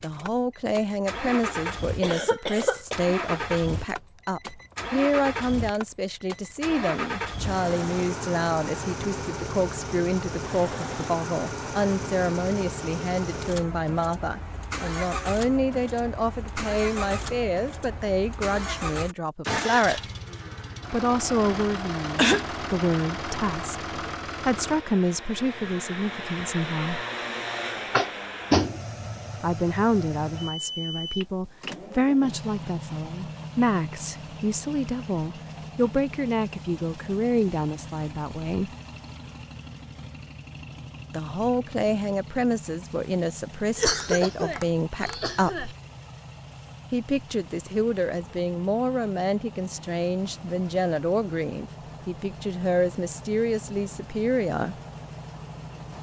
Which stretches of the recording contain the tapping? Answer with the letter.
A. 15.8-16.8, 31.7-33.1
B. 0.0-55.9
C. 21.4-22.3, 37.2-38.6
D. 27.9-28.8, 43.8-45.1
D.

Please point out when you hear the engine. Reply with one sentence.
The engine can be heard from 0.0 to 55.9 s.